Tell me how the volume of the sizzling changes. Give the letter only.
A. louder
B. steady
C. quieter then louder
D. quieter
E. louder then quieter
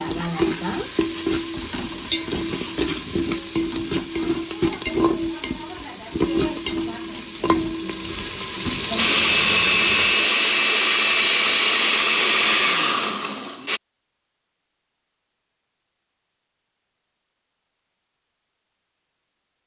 B.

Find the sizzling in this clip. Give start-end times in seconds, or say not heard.
0.0-10.2.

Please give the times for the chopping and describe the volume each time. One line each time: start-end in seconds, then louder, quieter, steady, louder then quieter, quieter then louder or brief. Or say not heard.
not heard.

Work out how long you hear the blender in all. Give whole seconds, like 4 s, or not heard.
5 s.